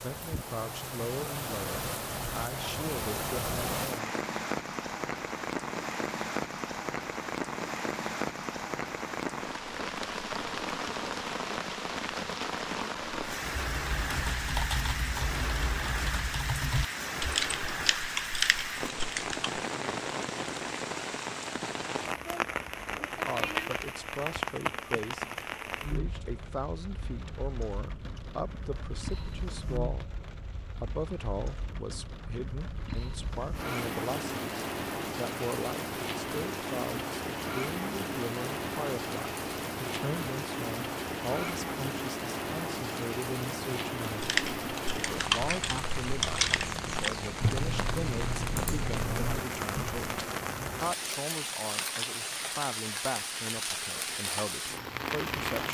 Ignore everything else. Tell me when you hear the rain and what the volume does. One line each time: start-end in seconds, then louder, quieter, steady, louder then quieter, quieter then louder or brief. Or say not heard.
0.0-55.6 steady.